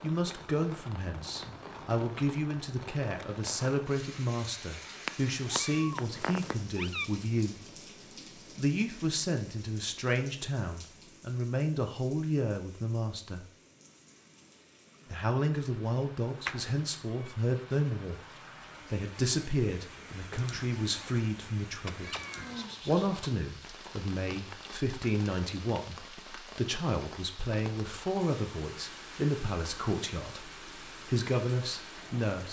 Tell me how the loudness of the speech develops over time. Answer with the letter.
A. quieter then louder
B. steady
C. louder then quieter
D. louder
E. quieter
B.